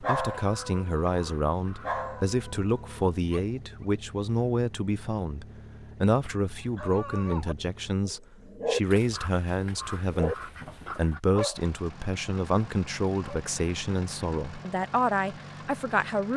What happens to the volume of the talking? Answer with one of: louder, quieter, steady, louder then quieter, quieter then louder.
steady.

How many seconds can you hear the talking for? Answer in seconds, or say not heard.
16 s.